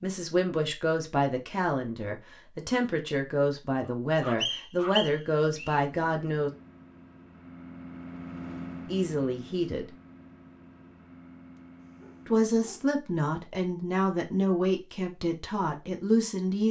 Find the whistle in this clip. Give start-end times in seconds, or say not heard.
4.4-5.8.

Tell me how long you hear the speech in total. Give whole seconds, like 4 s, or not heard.
12 s.